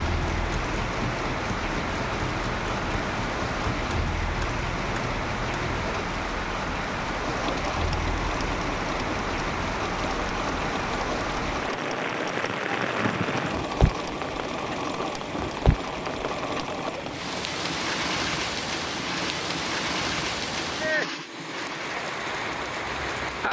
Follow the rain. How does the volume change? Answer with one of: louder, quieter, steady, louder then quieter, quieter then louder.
steady.